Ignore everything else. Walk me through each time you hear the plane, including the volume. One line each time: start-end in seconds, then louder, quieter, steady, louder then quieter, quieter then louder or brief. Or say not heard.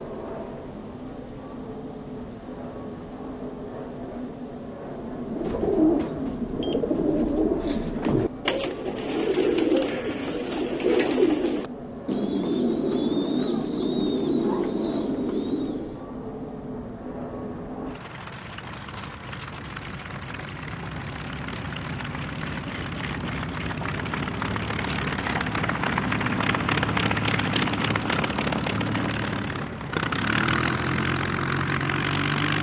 0.0-32.5 louder.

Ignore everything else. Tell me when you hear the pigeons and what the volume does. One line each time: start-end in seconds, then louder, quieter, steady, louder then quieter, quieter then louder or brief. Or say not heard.
5.0-16.1 steady.